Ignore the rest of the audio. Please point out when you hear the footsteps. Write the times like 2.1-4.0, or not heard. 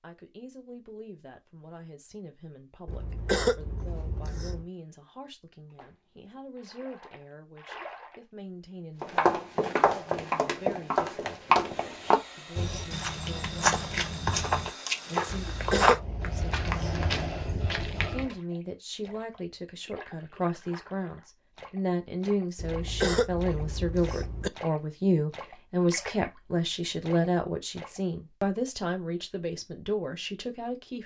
9.0-18.4.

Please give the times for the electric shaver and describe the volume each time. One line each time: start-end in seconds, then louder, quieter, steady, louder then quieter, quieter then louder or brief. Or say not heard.
not heard.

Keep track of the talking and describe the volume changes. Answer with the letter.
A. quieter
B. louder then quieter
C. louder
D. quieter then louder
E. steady
C.